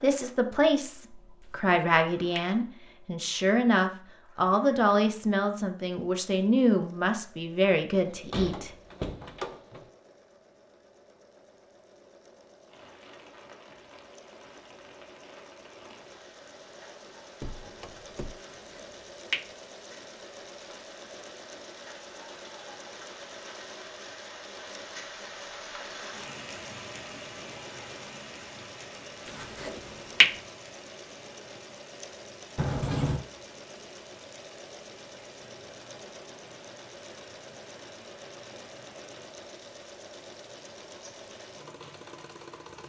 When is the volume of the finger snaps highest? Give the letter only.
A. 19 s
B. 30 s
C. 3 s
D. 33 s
B.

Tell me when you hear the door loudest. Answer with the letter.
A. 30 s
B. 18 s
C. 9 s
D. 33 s
D.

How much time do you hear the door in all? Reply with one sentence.
You can hear the door for 4 seconds altogether.